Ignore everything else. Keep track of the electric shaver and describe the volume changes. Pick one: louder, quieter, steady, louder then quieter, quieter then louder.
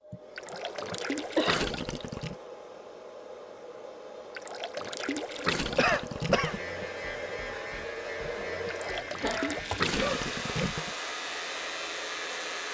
steady.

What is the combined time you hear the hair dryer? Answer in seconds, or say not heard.
13 s.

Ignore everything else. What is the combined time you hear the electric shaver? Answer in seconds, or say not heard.
6 s.